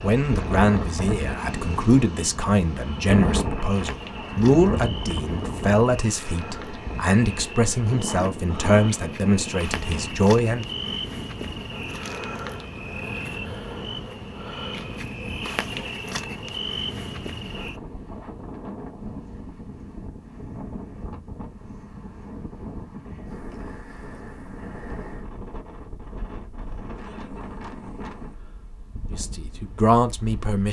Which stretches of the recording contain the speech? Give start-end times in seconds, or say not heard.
0.0-10.7, 29.1-30.6.